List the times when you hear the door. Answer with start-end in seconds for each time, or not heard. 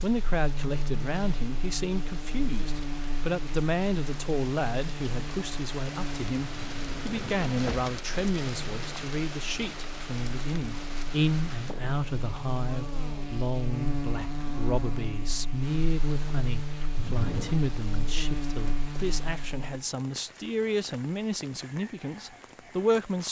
6.5-8.0, 16.9-17.6.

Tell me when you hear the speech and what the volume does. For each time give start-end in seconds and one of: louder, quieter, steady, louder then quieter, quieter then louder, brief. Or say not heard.
0.0-23.2 steady.